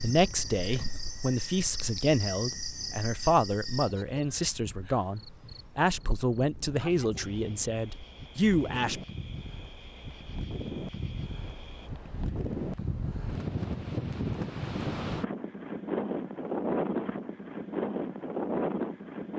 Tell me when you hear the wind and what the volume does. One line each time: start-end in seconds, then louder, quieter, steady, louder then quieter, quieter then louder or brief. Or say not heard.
0.0-19.3 louder.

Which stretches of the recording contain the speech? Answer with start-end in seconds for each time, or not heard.
0.0-9.0.